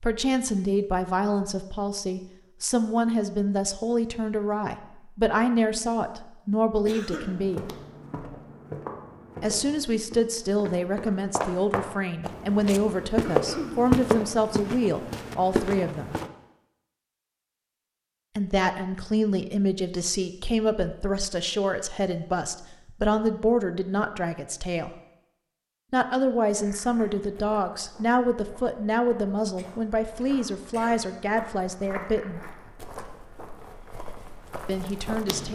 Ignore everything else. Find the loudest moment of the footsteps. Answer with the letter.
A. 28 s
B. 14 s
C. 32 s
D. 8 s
B.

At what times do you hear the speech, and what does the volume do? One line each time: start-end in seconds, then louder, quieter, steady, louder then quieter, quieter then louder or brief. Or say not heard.
0.0-7.7 steady
9.4-16.1 steady
18.4-24.9 steady
25.9-32.4 steady
34.6-35.5 brief.